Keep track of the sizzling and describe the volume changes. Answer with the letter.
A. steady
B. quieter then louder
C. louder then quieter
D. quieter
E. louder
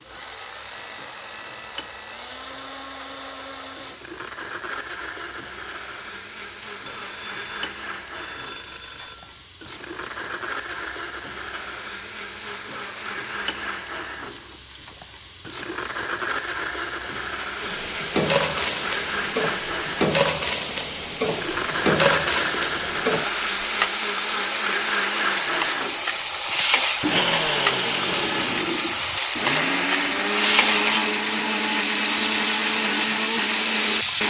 E.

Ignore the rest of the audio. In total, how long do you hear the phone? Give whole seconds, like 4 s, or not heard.
3 s.